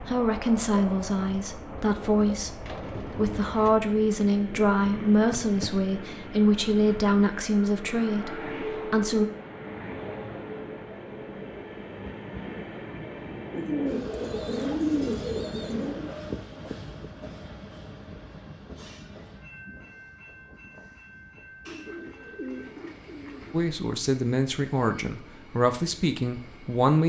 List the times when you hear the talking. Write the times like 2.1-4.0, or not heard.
0.0-9.3, 23.5-27.0.